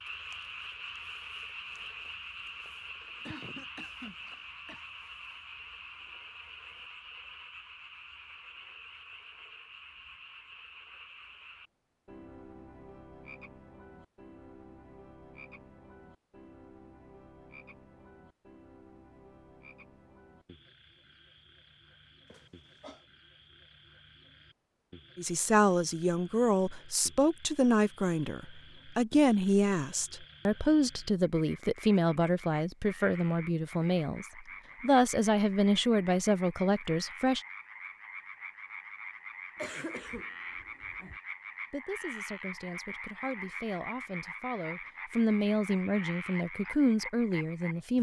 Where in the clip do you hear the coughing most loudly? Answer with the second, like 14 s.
40 s.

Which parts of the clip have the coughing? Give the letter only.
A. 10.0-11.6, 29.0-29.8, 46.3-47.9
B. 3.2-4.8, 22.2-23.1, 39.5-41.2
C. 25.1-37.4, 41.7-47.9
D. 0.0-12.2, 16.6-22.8
B.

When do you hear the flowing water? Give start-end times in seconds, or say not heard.
not heard.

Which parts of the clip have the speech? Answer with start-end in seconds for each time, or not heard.
25.1-37.4, 41.7-47.9.